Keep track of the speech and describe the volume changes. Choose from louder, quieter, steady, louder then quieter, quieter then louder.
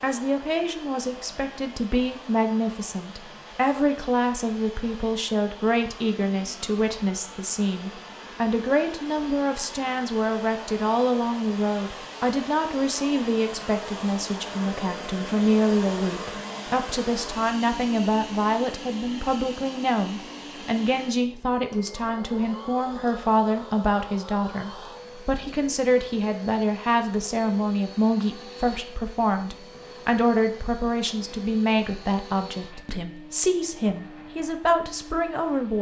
steady.